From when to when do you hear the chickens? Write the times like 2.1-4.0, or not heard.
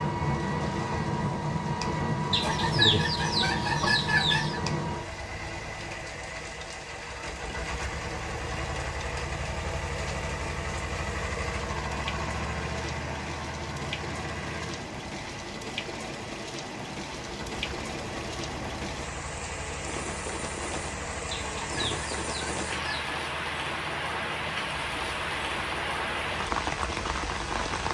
2.3-4.6, 21.3-23.1.